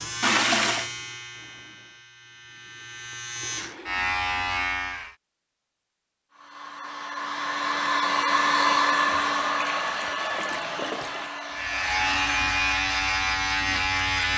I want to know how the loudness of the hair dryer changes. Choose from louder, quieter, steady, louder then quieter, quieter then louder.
louder then quieter.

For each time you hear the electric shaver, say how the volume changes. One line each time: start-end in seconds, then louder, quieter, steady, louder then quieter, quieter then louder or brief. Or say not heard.
0.0-5.2 quieter then louder
11.5-14.3 brief.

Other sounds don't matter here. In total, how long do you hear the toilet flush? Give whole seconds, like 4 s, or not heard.
3 s.